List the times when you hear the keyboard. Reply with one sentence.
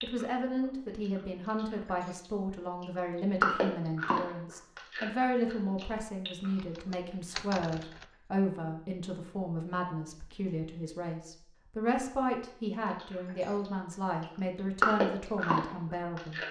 The keyboard can be heard from 6.5 to 8.1 s.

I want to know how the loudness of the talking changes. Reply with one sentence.
The volume of the talking stays about the same.